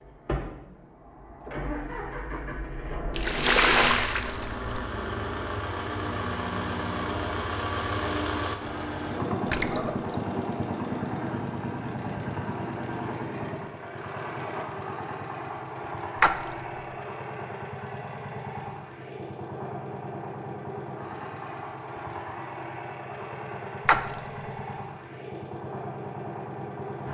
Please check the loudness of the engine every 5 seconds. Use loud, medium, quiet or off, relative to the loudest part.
medium, loud, loud, medium, medium, medium.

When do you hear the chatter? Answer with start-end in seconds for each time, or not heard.
not heard.